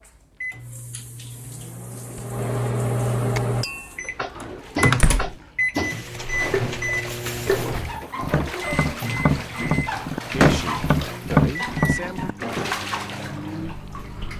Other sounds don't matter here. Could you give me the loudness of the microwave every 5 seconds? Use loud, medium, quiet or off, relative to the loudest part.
loud, loud, medium.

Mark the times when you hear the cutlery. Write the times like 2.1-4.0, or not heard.
not heard.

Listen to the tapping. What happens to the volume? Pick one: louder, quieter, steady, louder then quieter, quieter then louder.
louder.